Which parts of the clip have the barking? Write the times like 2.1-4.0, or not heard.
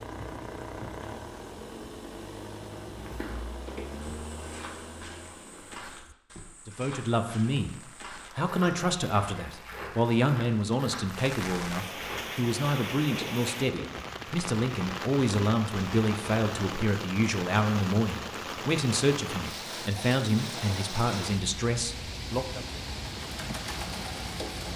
not heard.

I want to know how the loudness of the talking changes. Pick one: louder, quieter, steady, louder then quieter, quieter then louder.
steady.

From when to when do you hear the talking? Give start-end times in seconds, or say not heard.
6.7-22.6.